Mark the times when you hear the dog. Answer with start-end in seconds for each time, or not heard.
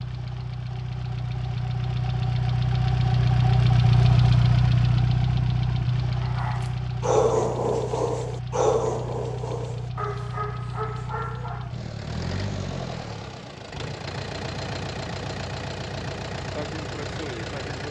6.2-11.8.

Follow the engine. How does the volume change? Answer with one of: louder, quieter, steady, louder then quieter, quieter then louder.
quieter.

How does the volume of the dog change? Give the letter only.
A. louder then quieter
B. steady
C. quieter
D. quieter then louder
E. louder
C.